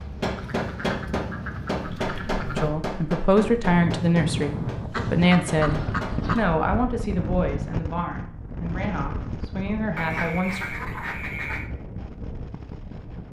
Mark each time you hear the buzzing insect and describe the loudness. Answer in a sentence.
You can't hear the buzzing insect here.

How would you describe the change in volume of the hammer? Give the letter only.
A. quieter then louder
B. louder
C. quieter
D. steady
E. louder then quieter
C.